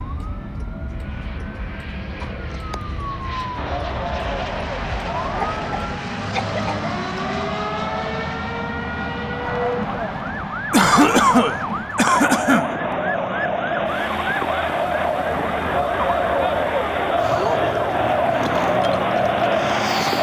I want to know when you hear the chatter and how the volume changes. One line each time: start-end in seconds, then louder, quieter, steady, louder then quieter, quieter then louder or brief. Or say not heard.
3.5-20.1 louder.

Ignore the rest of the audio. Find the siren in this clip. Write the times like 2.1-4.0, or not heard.
0.0-20.1.